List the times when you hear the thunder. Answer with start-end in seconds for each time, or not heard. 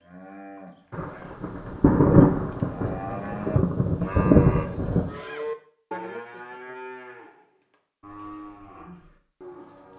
0.9-5.2.